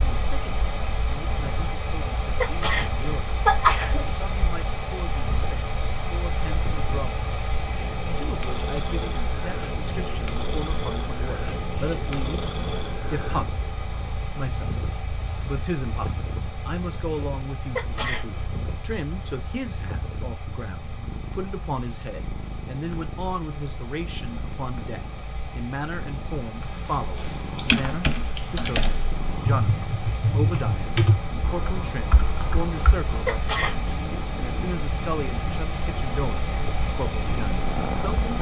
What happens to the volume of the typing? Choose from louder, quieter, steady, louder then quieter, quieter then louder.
quieter.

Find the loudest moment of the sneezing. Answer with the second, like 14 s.
4 s.